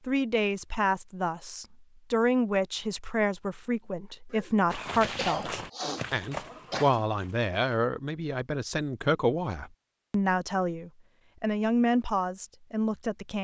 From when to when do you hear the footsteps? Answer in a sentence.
The footsteps can be heard from 4.7 to 7.8 s.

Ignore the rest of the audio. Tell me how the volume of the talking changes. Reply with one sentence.
The volume of the talking stays about the same.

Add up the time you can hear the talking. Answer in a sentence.
The talking can be heard for 13 seconds in total.